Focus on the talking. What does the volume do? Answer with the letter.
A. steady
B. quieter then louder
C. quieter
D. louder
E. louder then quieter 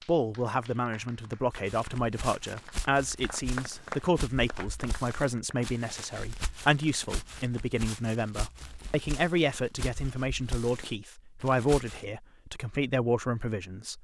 A.